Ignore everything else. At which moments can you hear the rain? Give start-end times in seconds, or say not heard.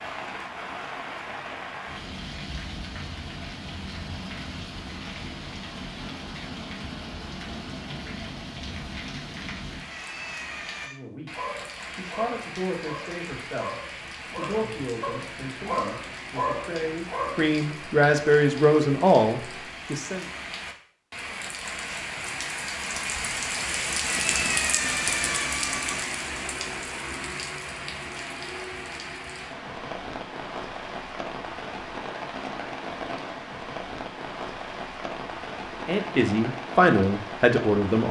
0.0-38.0.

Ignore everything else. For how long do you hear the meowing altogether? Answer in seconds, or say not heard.
3 s.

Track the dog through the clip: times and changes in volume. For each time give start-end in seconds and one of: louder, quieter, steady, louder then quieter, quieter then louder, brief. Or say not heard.
11.3-17.4 louder.